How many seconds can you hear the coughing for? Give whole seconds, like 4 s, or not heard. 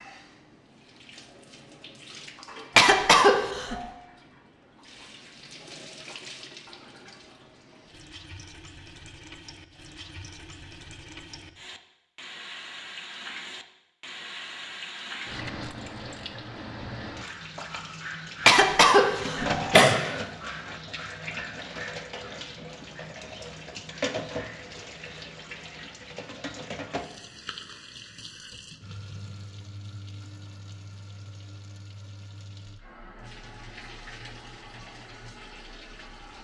3 s.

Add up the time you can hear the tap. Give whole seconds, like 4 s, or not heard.
36 s.